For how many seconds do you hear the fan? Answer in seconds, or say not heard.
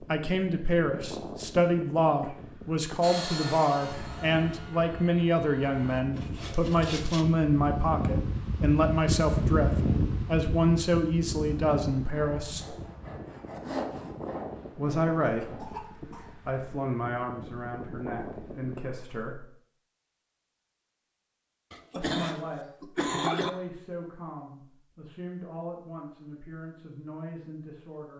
19 s.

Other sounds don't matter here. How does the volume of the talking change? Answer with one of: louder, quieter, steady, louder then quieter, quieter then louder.
quieter.